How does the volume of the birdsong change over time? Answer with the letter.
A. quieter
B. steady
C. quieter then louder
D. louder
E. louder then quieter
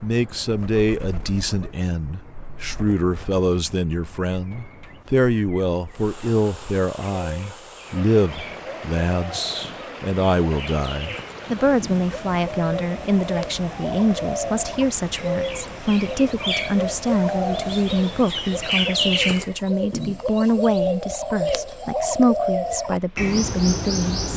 D.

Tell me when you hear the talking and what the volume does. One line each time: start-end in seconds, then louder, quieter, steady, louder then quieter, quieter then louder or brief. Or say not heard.
0.0-24.3 steady.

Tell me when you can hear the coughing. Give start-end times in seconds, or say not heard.
not heard.